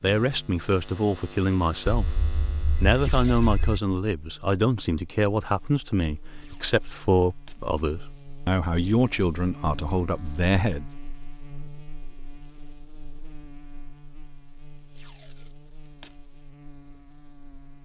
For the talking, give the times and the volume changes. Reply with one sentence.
You can hear the talking from 0.0 to 10.8 s, at a steady volume.